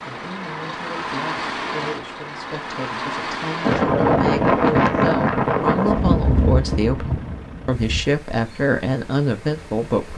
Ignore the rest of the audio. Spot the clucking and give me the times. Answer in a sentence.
You can't hear the clucking here.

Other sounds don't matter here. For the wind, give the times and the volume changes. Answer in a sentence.
You can hear the wind from 3.6 to 10.1 s, getting quieter.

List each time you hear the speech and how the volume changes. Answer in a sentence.
The speech can be heard from 0.1 to 10.1 s, getting louder.